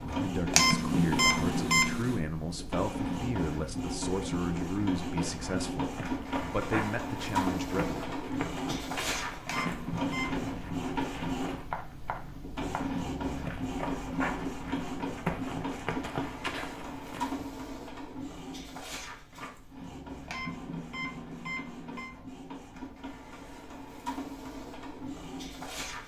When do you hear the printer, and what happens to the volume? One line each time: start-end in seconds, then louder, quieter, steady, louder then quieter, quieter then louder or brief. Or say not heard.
0.0-26.0 quieter.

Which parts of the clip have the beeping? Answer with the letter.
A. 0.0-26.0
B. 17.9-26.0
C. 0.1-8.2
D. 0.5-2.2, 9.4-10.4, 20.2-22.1
D.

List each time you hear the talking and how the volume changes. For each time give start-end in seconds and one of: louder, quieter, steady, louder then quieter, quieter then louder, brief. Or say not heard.
0.1-8.2 steady.